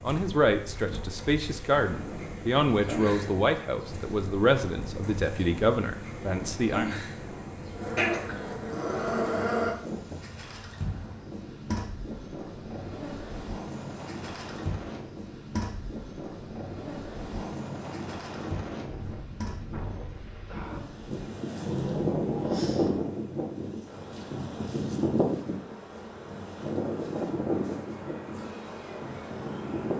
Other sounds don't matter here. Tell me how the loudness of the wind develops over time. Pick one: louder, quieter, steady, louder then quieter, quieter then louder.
louder.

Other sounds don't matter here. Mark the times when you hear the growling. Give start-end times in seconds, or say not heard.
8.0-9.7, 21.6-23.0.